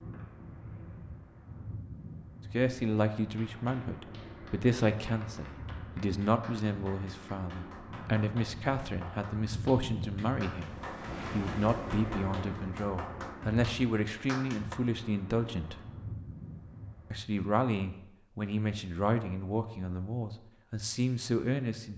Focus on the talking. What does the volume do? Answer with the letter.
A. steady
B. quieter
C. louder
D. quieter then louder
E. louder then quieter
A.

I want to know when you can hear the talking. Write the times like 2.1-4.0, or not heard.
2.5-15.8, 17.1-21.9.